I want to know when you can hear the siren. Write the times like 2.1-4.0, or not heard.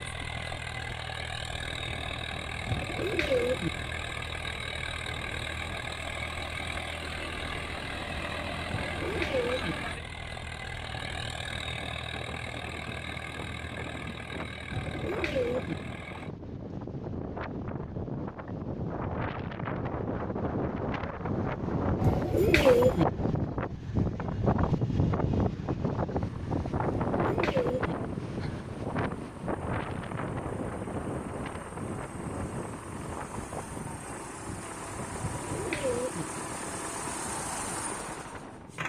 not heard.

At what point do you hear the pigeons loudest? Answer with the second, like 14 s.
23 s.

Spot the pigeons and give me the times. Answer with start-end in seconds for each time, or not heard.
2.6-3.7, 8.7-9.8, 14.7-15.8, 22.0-23.1, 27.1-27.9, 35.2-36.2.